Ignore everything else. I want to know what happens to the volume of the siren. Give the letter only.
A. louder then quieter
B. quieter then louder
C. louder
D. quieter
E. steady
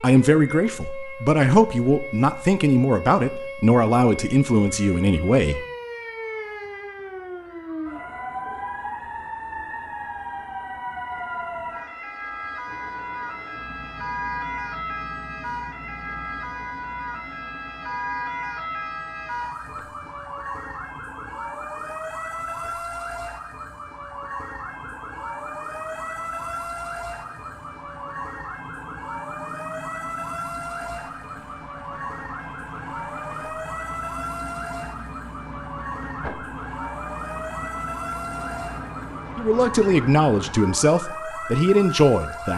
E.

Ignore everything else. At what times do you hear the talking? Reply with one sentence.
You can hear the talking from 0.0 to 5.7 s and from 39.4 to 42.5 s.